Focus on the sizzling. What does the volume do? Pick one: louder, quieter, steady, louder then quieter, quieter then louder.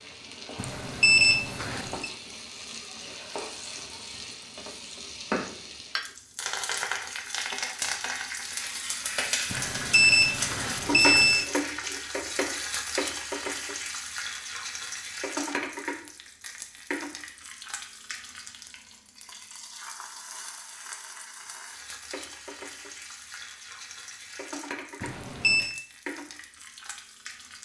louder then quieter.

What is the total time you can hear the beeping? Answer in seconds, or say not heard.
4 s.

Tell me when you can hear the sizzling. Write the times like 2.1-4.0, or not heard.
0.0-27.5.